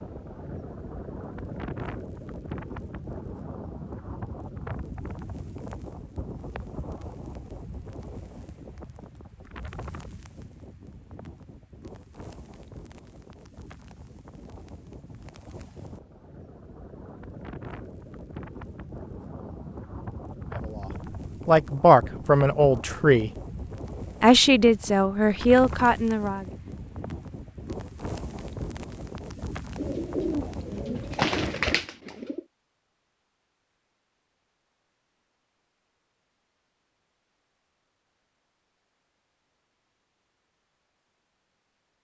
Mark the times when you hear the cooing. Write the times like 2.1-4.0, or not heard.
29.8-32.4.